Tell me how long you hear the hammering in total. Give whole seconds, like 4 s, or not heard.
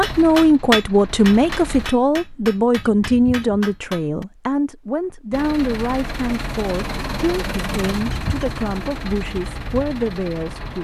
4 s.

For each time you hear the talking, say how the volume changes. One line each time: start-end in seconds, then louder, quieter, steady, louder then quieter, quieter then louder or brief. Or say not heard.
0.0-10.7 quieter.